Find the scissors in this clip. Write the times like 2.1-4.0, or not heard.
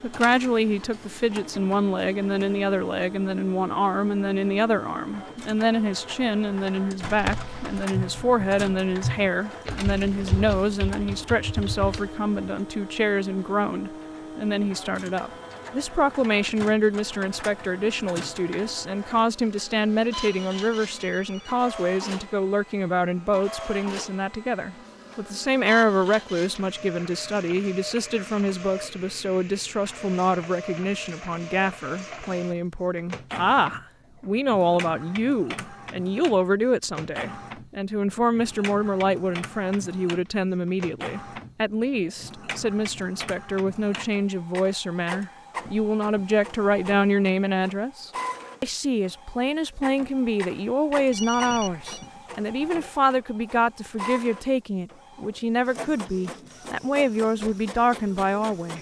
not heard.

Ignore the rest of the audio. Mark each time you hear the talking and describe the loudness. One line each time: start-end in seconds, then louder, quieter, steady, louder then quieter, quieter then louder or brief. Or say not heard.
0.0-58.7 steady.